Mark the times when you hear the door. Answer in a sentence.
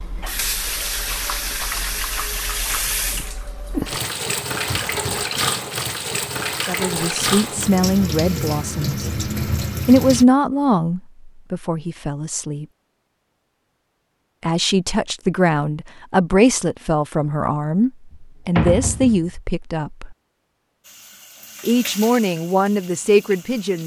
The door can be heard from 4.7 to 5.3 s and from 18.6 to 19.3 s.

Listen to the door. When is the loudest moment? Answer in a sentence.
The volume of the door peaks at 19 seconds.